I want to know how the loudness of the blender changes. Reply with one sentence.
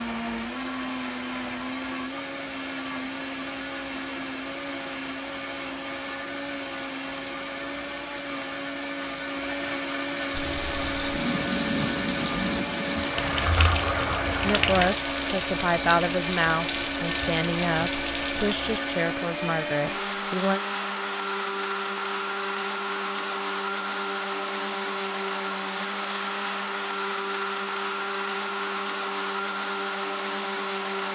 The volume of the blender stays about the same.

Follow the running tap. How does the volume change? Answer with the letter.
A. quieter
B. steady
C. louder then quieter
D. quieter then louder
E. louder
B.